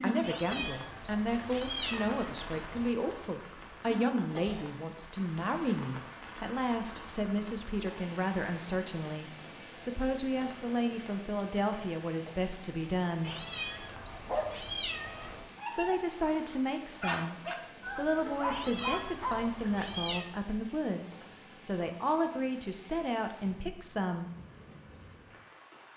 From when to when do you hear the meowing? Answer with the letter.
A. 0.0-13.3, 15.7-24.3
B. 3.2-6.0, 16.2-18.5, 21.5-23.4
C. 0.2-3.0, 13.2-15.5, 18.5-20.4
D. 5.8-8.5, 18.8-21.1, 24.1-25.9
C.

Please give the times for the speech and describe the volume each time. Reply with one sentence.
The speech can be heard from 0.0 to 13.3 s, at a steady volume; and from 15.7 to 24.3 s, at a steady volume.